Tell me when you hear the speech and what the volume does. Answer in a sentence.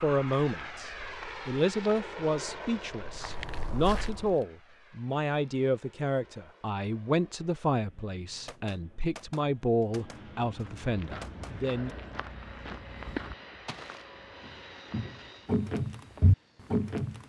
The speech can be heard from 0.0 to 11.9 s, at a steady volume.